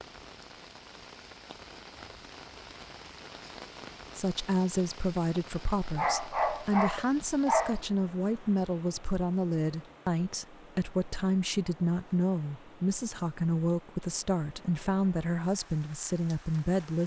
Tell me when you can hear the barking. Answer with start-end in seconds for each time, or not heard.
6.0-7.8.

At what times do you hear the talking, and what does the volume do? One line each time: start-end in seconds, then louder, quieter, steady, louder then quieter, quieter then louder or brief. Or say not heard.
4.2-17.0 steady.